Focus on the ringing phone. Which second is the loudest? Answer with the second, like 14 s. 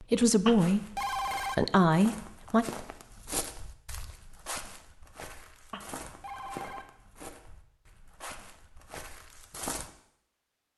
1 s.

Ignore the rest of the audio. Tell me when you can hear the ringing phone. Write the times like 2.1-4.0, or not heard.
0.5-1.6, 5.7-6.8.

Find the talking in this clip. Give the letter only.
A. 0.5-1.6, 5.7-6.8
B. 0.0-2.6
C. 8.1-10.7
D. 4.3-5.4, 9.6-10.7
B.